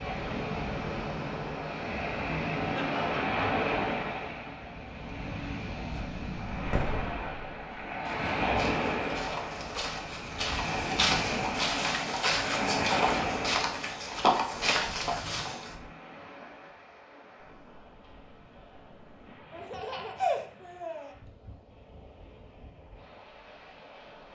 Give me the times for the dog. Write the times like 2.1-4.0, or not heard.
not heard.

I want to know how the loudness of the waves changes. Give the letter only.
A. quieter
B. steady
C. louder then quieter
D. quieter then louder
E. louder
A.